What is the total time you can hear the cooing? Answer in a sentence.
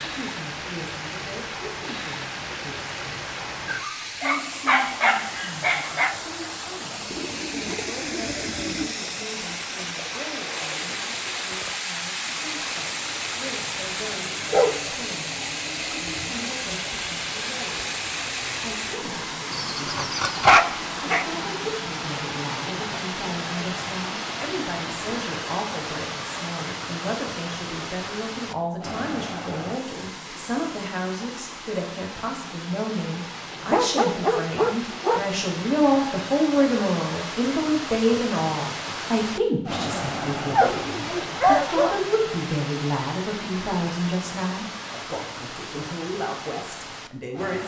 The cooing can be heard for 2 seconds in total.